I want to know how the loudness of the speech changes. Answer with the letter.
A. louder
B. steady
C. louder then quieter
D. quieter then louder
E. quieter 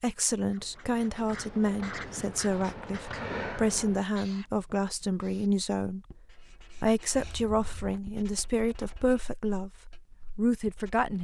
B.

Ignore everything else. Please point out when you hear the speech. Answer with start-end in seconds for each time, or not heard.
0.0-6.2, 6.8-11.1.